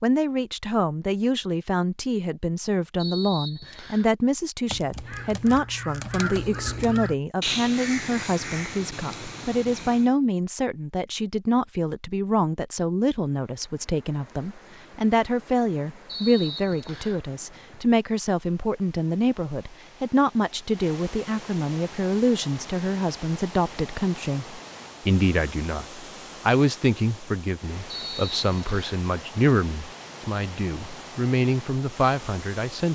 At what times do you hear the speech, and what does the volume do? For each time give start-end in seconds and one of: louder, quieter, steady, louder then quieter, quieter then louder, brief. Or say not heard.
0.0-32.8 steady.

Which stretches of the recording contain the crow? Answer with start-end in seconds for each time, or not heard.
4.7-10.2.